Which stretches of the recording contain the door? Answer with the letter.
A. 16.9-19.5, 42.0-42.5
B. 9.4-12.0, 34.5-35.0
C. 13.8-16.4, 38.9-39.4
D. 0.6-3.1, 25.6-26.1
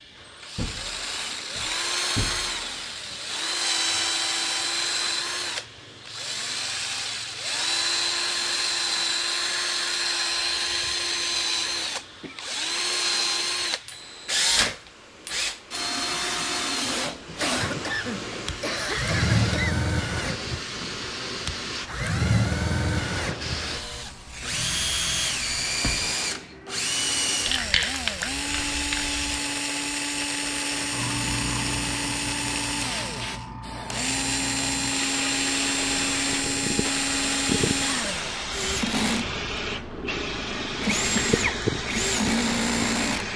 D.